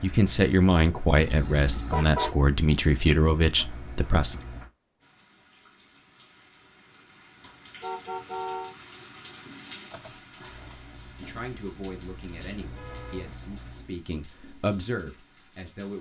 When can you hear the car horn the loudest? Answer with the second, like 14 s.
2 s.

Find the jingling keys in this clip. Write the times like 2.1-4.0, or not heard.
9.9-10.9.